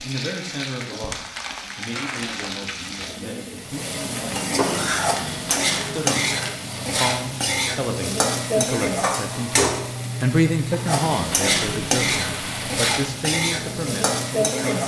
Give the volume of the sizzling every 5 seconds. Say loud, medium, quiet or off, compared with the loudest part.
medium, loud, loud.